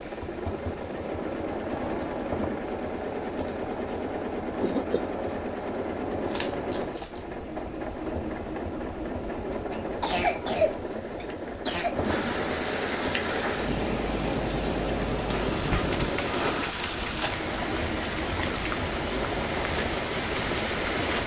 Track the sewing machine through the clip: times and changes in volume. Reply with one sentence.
The sewing machine can be heard from 0.0 to 21.2 s, at a steady volume.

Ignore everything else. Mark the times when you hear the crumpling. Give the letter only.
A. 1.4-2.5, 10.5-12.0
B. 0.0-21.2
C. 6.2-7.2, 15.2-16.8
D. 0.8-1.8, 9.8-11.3
C.